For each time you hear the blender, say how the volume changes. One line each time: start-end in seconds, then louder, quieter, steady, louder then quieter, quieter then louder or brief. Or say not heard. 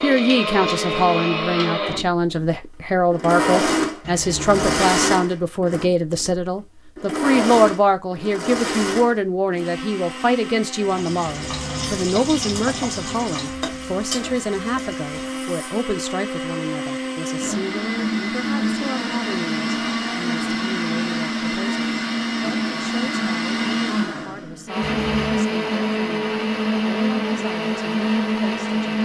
0.0-29.0 quieter then louder.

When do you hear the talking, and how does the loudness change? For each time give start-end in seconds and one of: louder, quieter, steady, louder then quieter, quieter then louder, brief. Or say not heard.
0.0-29.0 quieter.